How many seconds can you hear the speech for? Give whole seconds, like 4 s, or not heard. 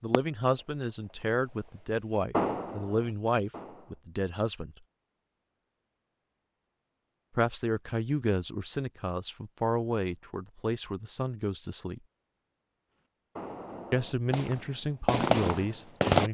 12 s.